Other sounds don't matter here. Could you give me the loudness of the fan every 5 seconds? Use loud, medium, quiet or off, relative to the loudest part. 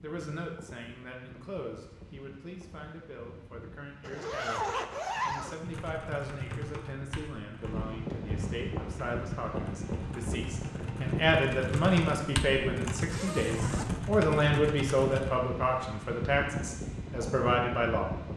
quiet, loud, loud, loud.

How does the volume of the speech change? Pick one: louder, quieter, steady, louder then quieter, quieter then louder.
louder.